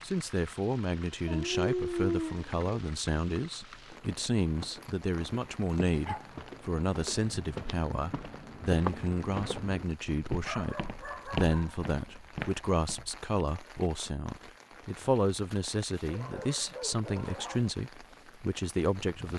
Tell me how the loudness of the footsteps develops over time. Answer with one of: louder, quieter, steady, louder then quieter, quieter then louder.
louder.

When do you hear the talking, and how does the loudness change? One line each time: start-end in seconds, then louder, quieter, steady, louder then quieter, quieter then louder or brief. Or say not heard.
0.0-19.3 steady.